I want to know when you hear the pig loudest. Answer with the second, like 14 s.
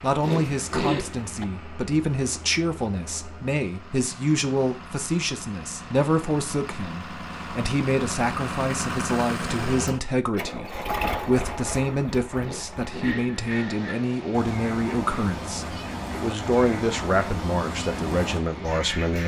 1 s.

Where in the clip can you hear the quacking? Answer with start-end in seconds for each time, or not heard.
13.0-19.2.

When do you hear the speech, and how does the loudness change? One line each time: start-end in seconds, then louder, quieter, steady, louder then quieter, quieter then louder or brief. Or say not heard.
0.0-19.2 steady.